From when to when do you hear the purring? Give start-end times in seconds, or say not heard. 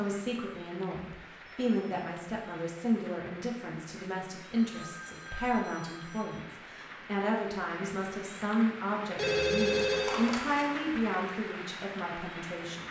not heard.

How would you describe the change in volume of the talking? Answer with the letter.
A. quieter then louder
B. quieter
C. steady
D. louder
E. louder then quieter
C.